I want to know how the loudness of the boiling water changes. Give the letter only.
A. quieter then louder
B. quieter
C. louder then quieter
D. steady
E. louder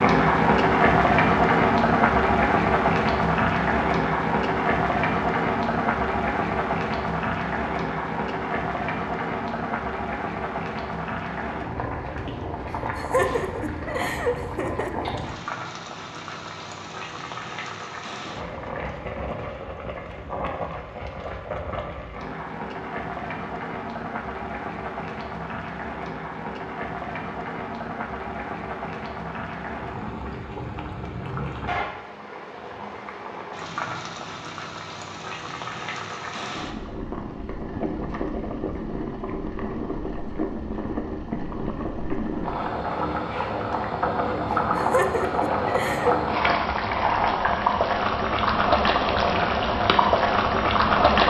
A.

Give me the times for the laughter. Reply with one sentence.
The laughter can be heard from 12.7 to 15.2 s and from 44.5 to 46.1 s.